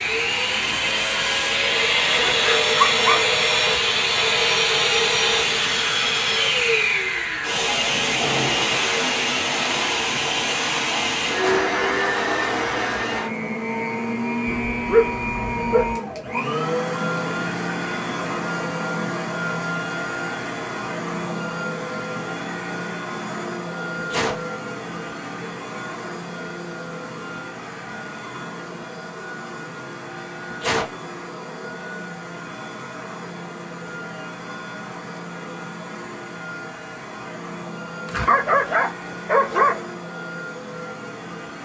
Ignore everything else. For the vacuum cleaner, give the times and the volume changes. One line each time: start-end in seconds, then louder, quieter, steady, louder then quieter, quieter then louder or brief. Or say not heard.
0.0-41.6 quieter.